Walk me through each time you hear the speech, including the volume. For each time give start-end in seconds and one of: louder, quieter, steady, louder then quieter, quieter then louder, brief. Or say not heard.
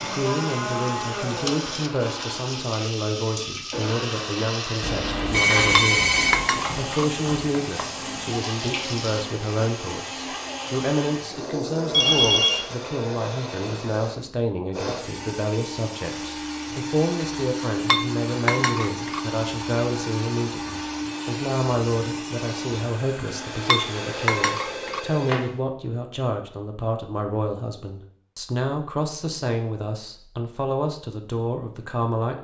0.0-32.3 steady.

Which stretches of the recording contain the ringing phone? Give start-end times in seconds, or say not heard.
4.8-6.5, 11.9-12.6, 23.9-25.4.